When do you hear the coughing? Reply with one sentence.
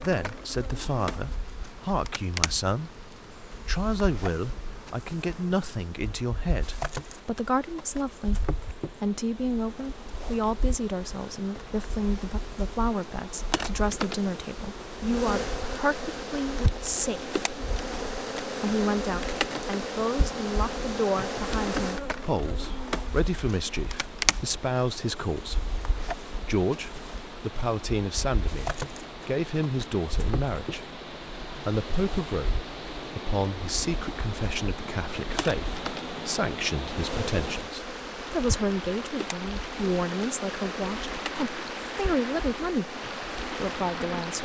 The coughing can't be heard in this clip.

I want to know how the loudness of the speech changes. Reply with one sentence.
The volume of the speech stays about the same.